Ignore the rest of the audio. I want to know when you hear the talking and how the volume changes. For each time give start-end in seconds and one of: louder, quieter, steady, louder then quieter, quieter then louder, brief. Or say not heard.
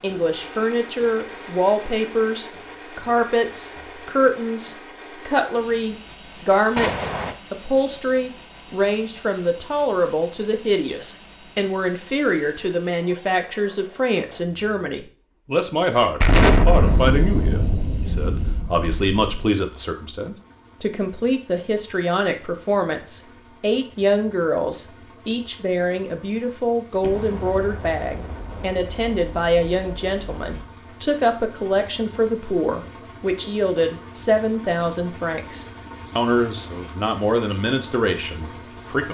0.0-39.0 steady.